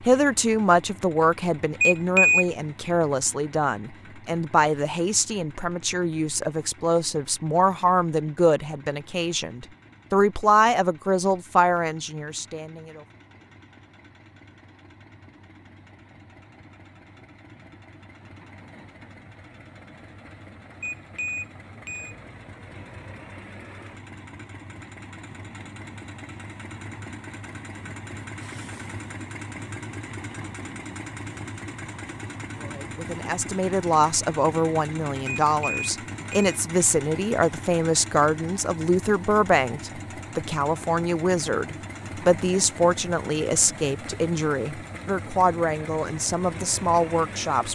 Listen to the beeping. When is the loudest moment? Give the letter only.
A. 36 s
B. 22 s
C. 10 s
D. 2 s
D.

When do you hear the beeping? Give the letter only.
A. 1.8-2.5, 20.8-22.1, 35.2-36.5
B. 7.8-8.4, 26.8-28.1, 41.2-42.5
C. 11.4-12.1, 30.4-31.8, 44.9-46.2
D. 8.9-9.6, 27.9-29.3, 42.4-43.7
A.